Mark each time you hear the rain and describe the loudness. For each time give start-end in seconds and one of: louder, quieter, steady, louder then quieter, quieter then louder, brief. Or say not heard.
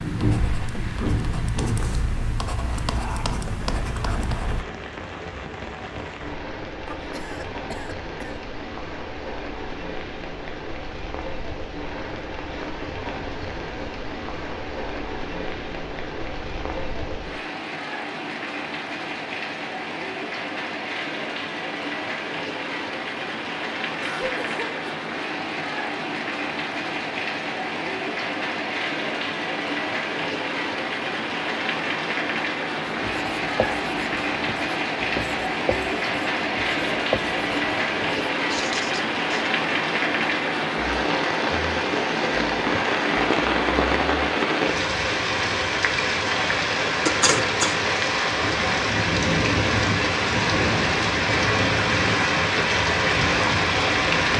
0.0-54.3 louder.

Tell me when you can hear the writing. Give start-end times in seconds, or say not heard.
0.0-4.7, 32.9-39.5.